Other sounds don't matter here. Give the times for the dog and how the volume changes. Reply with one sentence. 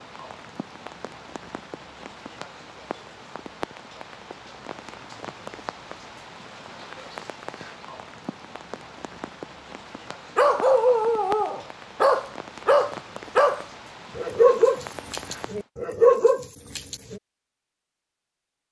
You can hear the dog from 10.3 to 17.2 s, at a steady volume.